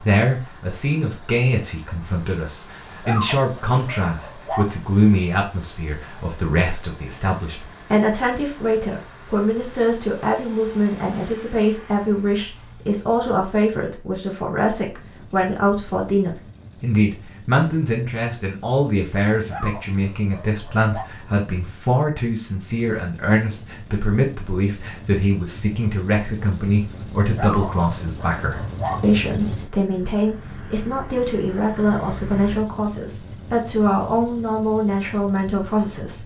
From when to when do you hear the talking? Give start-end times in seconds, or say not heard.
0.0-36.2.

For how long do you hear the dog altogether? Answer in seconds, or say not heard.
5 s.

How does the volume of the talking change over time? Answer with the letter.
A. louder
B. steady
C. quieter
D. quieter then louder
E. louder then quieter
B.